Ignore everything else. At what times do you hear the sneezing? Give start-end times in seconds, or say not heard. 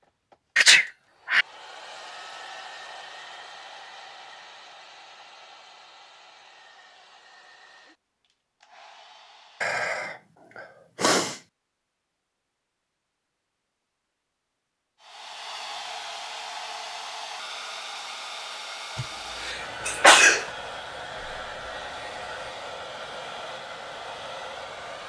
0.6-1.4, 9.6-10.2, 10.9-11.3, 18.9-20.4.